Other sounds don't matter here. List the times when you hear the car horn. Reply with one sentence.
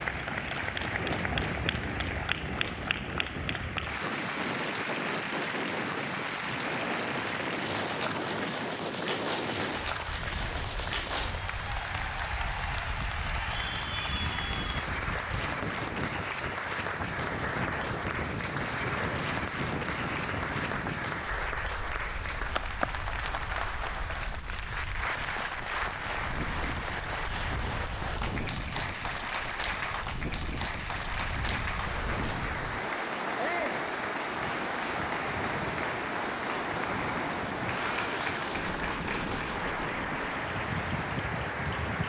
The car horn can't be heard in this clip.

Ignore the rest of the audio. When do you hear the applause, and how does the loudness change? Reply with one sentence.
You can hear the applause from 0.0 to 42.0 s, at a steady volume.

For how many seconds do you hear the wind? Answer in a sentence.
The wind can be heard for 42 seconds in total.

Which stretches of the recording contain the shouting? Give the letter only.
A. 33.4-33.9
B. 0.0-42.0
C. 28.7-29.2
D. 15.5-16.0
A.